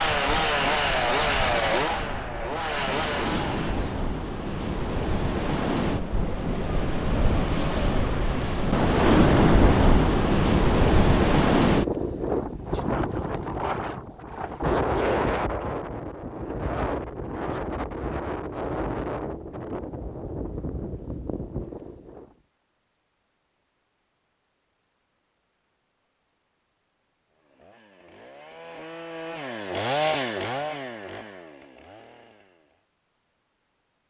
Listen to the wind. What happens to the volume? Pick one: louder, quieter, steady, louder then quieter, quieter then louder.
louder then quieter.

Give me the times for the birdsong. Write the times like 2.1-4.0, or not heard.
not heard.